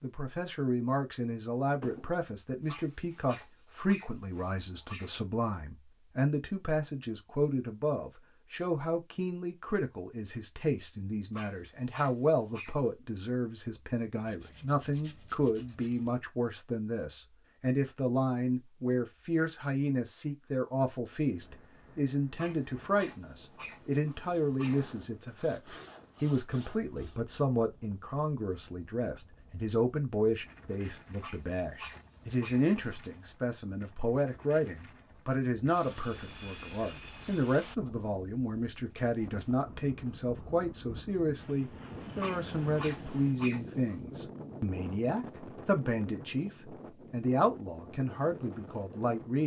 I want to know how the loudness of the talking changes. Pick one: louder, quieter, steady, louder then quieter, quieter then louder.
steady.